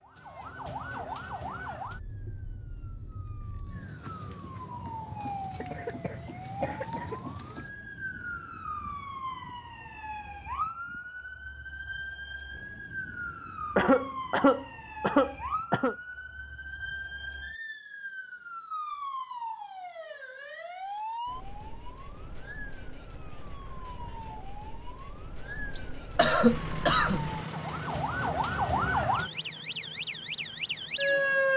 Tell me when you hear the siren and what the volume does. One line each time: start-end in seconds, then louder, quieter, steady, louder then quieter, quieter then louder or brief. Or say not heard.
0.0-31.5 louder.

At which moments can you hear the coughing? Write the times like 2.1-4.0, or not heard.
5.6-7.2, 13.8-15.9, 25.8-27.9.